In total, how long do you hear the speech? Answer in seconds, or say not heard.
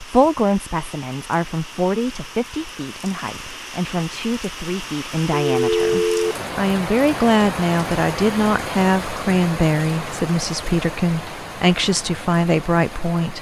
13 s.